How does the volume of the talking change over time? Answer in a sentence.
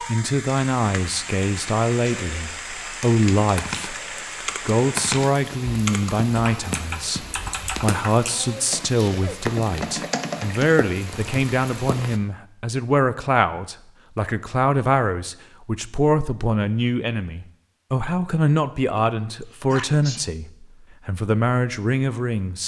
The loudness of the talking stays about the same.